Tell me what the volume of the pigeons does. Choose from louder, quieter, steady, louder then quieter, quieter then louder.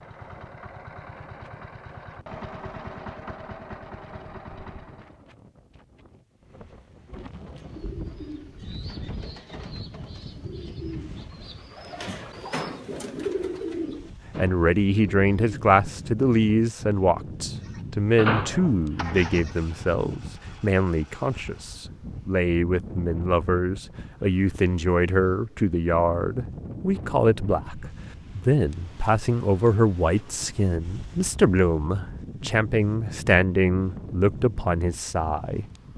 louder.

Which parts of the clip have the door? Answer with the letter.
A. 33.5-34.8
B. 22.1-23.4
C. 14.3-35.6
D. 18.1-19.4
D.